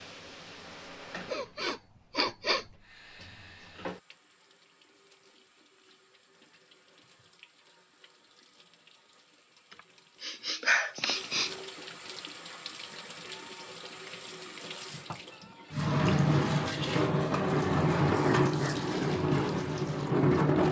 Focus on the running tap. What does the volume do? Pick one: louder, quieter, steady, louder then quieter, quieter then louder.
quieter then louder.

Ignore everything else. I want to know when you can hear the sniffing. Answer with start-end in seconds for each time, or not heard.
1.3-2.6, 9.7-11.6, 18.1-18.8.